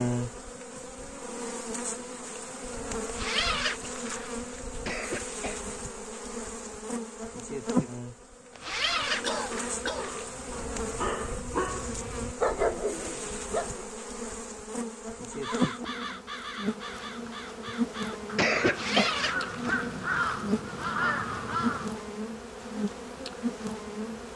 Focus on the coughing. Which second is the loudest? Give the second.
19 s.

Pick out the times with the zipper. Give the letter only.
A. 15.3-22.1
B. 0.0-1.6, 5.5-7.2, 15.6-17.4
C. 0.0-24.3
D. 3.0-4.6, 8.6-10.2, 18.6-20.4
D.